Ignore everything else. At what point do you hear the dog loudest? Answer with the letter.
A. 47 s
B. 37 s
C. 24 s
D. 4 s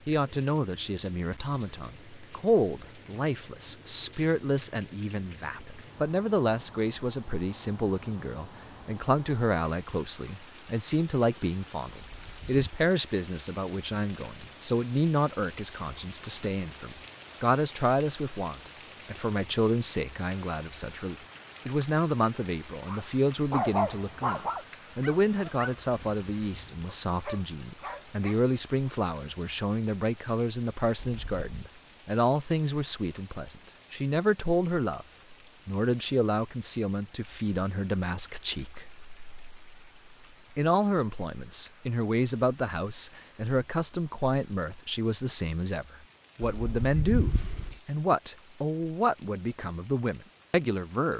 C.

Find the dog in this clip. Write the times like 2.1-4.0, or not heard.
22.9-28.4.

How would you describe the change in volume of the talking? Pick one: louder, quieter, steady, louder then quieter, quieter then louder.
steady.